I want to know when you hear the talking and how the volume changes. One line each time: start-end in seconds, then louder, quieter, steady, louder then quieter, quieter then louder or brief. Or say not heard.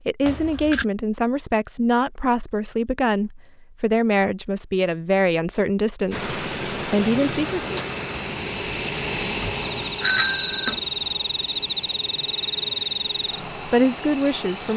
0.1-7.8 steady
13.6-14.7 brief.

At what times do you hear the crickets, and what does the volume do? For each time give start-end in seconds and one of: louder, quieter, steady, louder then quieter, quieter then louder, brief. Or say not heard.
6.1-14.7 quieter then louder.